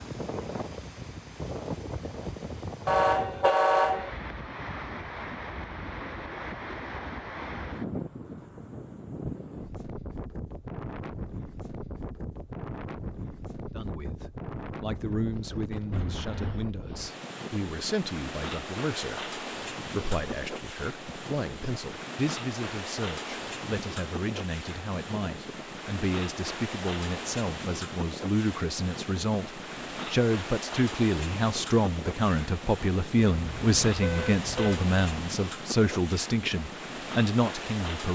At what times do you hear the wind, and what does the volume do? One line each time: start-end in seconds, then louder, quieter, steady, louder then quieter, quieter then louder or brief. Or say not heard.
0.0-38.0 steady.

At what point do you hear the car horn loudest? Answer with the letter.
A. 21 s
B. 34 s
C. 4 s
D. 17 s
C.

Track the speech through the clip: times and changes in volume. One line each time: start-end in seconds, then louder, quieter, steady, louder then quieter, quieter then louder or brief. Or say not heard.
13.8-38.0 louder.